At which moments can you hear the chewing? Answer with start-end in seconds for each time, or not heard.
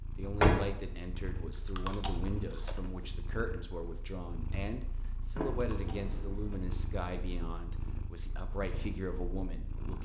1.6-3.1, 5.5-6.8.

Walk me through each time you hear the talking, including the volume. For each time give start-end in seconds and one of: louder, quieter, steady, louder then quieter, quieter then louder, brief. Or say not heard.
0.1-10.0 steady.